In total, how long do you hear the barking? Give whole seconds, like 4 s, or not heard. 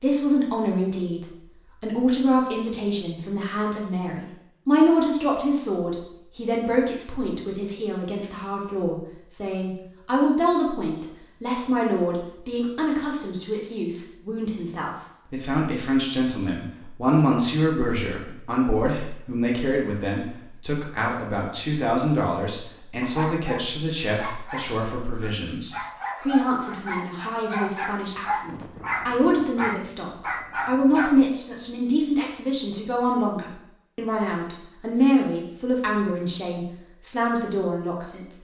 8 s.